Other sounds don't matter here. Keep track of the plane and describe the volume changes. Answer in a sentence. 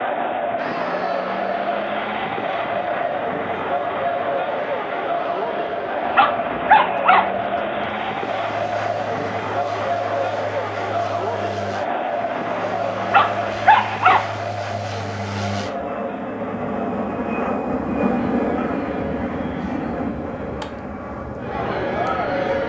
The volume of the plane goes up.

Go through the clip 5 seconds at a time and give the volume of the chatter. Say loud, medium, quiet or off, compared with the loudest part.
loud, loud, loud, medium, loud.